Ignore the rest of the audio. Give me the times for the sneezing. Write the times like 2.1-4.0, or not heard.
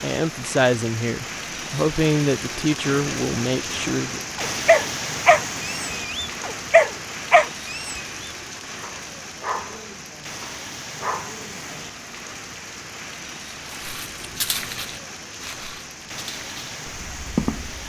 not heard.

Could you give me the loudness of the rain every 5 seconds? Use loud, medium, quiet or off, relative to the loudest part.
loud, loud, medium, medium.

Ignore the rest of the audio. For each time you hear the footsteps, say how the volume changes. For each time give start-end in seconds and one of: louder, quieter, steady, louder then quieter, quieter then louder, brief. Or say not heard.
13.7-17.8 quieter then louder.